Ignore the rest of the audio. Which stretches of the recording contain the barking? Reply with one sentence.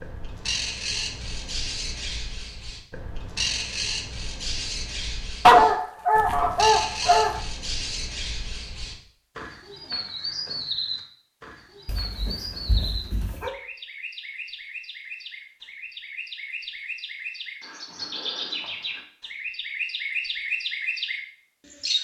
The barking can be heard from 5.5 to 7.4 s and from 11.8 to 13.6 s.